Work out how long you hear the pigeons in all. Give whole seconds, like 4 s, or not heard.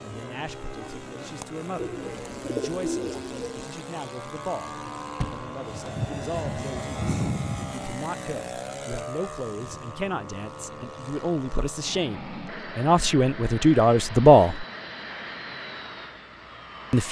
2 s.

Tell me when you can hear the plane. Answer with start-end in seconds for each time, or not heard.
0.0-17.0.